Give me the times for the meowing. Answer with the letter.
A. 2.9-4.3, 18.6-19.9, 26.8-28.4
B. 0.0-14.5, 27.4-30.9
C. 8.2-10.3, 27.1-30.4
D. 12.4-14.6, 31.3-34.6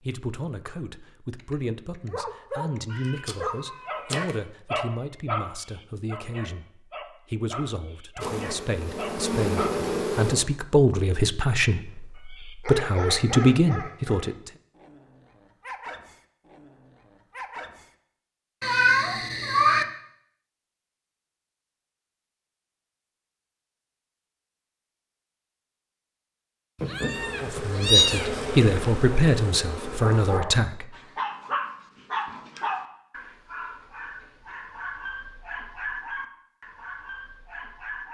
A.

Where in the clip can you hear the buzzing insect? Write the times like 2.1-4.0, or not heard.
8.2-10.3, 27.1-30.4.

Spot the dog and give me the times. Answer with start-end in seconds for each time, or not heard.
1.4-9.7, 12.3-17.9, 30.0-38.0.